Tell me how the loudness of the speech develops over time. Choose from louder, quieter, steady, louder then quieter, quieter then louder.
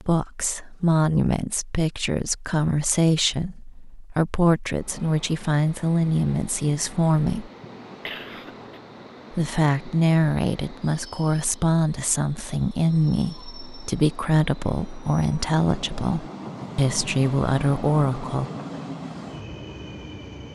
steady.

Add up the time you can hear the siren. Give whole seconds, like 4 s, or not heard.
not heard.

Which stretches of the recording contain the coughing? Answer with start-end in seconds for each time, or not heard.
8.1-8.8.